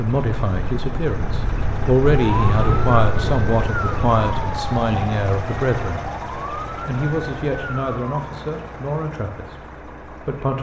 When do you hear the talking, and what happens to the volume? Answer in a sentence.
You can hear the talking from 0.0 to 10.5 s, getting quieter.